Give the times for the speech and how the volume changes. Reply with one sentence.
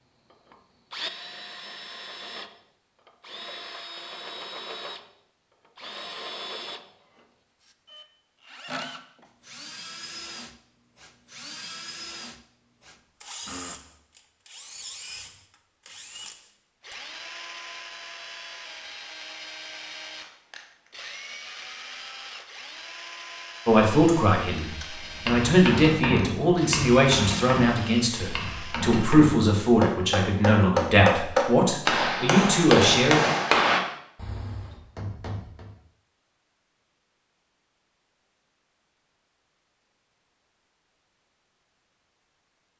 You can hear the speech from 23.6 to 33.2 s, at a steady volume.